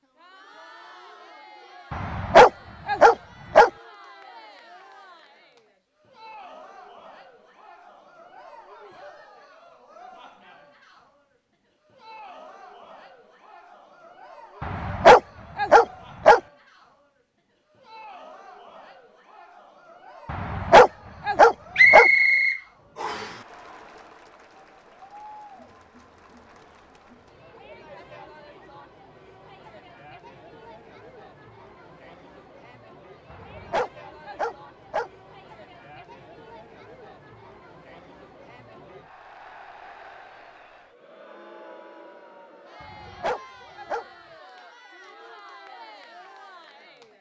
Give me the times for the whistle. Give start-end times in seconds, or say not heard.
21.8-23.4.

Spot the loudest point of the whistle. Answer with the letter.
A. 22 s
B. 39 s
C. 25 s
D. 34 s
A.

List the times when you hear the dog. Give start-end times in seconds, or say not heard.
1.9-3.7, 14.6-16.4, 20.3-22.1, 33.3-35.1, 42.8-44.0.